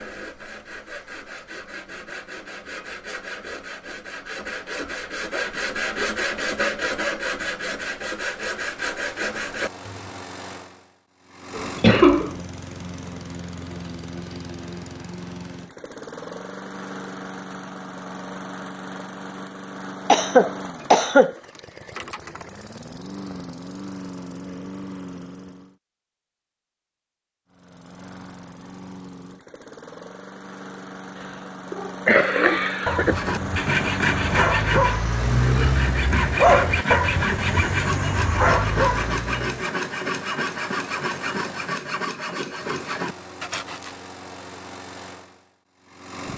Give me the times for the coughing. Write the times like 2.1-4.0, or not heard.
11.6-12.3, 20.1-21.4, 31.7-33.1.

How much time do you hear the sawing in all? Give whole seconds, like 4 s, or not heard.
21 s.